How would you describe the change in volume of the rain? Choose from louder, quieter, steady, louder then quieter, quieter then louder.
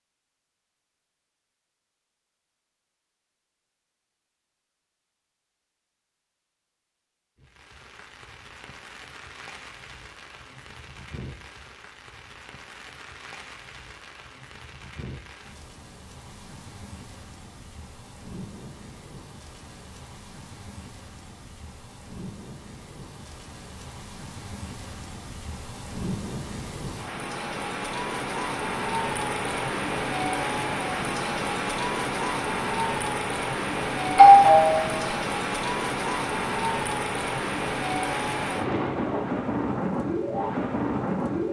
louder.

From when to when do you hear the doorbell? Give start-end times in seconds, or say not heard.
34.1-35.0.